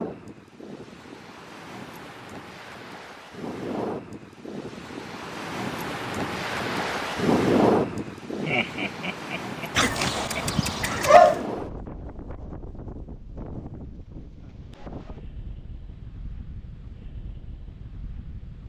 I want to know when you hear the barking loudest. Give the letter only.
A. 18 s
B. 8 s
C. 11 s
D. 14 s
C.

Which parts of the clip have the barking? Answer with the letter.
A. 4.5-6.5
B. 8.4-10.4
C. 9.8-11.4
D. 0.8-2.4
C.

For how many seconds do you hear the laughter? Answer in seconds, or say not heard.
2 s.